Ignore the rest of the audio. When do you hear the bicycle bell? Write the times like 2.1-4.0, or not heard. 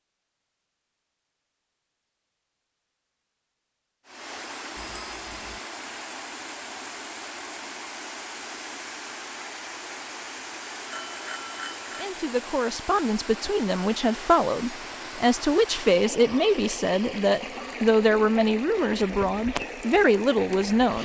4.8-5.6, 10.9-12.1.